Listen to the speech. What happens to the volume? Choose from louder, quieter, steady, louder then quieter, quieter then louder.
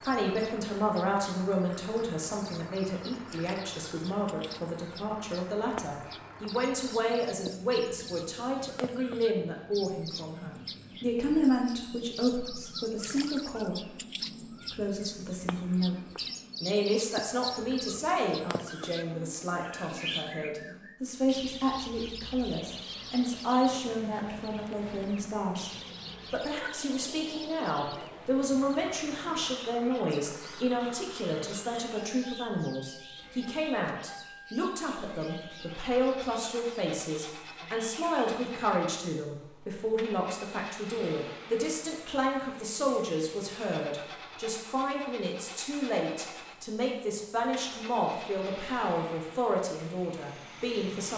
steady.